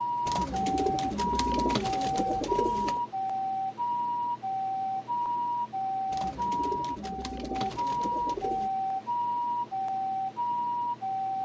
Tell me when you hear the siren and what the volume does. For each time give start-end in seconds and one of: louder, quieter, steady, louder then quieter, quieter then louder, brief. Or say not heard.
0.0-11.3 steady.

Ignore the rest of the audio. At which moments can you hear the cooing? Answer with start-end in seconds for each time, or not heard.
0.2-3.0, 6.1-8.7.